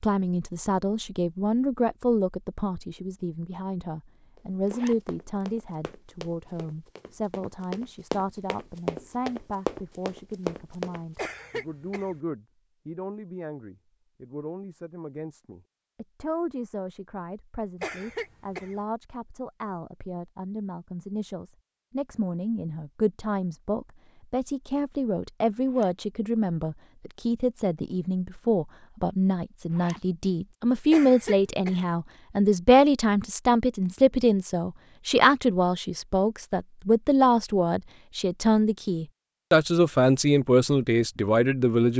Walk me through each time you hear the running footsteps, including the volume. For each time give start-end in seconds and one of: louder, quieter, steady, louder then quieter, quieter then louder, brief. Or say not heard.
4.3-11.3 louder.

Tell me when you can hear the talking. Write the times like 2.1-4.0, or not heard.
0.0-41.9.